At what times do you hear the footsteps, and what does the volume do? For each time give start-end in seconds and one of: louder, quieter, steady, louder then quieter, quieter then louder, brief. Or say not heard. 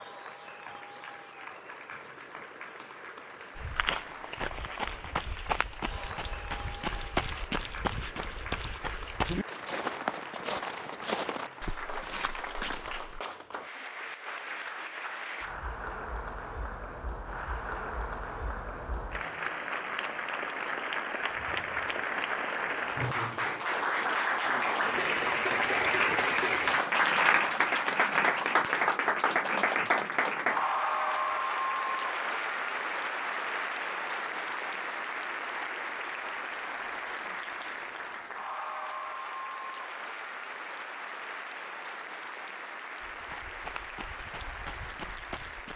3.5-13.2 steady
43.0-45.7 brief.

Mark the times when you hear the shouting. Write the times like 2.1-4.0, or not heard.
not heard.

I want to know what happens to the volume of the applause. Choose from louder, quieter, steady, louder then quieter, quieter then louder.
louder then quieter.